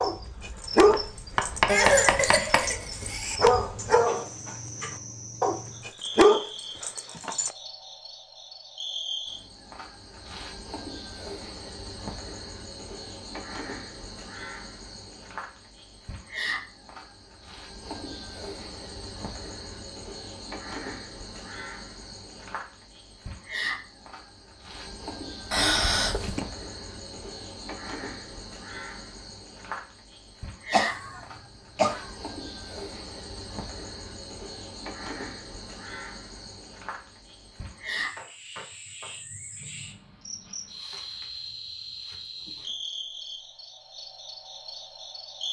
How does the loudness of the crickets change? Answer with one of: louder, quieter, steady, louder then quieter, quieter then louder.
steady.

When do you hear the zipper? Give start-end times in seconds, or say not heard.
not heard.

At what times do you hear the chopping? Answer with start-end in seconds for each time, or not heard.
0.8-2.6.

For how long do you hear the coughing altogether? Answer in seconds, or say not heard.
4 s.